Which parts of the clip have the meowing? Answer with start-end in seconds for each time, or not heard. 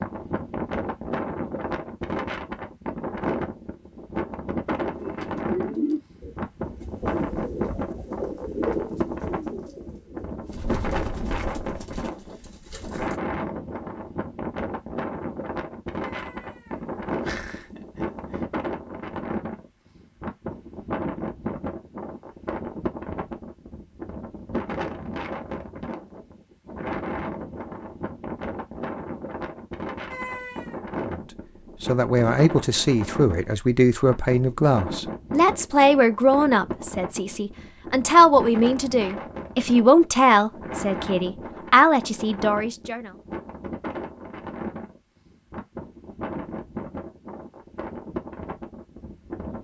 16.1-16.6, 17.2-18.4, 30.1-30.8.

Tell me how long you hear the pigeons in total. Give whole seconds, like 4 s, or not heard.
8 s.